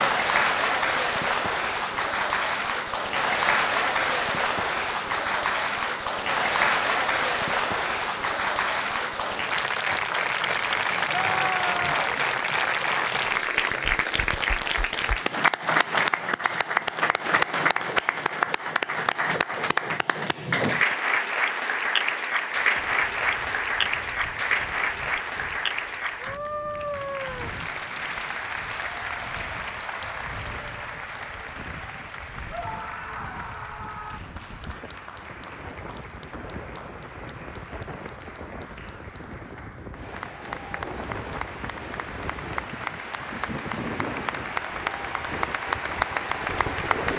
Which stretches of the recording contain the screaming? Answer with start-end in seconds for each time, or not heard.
11.1-12.1, 26.1-27.6, 32.5-34.2.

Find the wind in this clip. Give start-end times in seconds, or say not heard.
22.6-47.1.